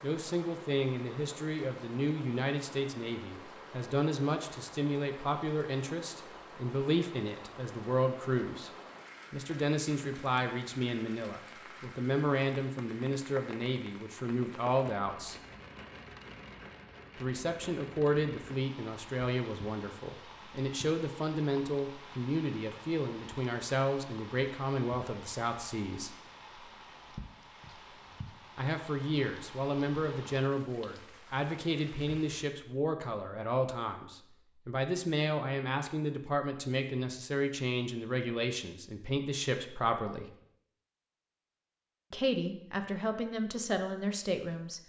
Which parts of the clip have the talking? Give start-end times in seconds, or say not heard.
0.0-8.7, 9.3-15.3, 17.1-26.1, 28.6-40.4, 42.1-44.8.